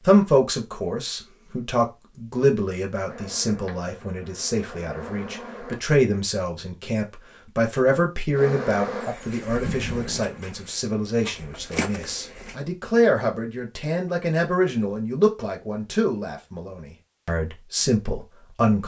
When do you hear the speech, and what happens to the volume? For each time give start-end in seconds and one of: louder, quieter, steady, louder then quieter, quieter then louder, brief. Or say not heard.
0.0-18.8 steady.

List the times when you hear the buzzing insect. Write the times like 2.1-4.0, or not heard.
3.0-5.8, 8.3-12.6.